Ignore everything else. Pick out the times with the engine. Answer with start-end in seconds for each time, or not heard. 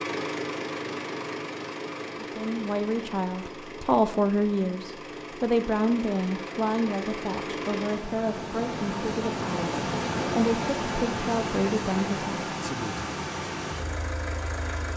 0.0-14.9.